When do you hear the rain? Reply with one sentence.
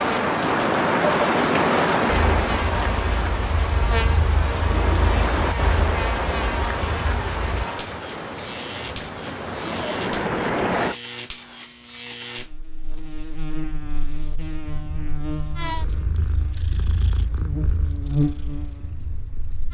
The rain can be heard from 0.0 to 10.9 s.